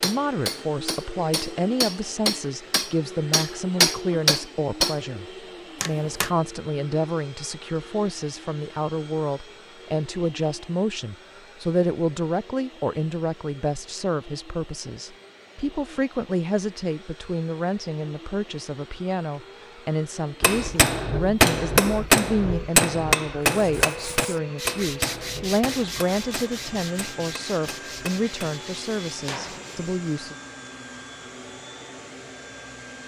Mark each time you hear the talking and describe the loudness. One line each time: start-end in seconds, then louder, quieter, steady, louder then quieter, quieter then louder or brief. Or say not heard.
0.0-30.4 steady.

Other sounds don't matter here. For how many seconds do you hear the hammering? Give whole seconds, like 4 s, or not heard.
16 s.